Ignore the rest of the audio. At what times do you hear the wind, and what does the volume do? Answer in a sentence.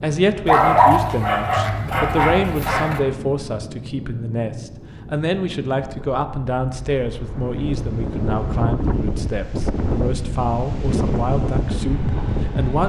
You can hear the wind from 0.0 to 12.8 s, getting louder.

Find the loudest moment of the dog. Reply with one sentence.
The loudest moment of the dog is at 1 second.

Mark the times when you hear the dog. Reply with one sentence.
The dog can be heard from 0.5 to 3.0 s.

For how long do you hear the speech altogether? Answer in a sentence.
You can hear the speech for 13 seconds altogether.